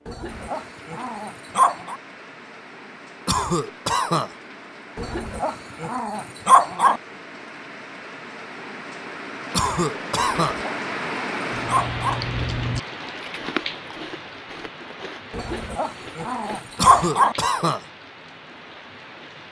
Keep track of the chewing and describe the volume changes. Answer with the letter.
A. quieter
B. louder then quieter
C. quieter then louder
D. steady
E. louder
A.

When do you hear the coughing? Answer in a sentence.
You can hear the coughing from 3.2 to 4.3 s, from 9.5 to 10.6 s and from 16.8 to 17.9 s.